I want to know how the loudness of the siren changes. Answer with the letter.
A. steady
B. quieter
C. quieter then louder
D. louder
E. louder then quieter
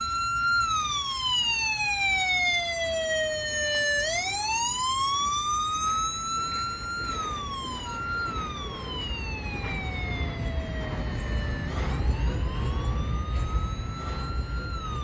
B.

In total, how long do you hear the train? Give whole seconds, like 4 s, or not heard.
15 s.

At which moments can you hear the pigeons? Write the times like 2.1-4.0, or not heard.
not heard.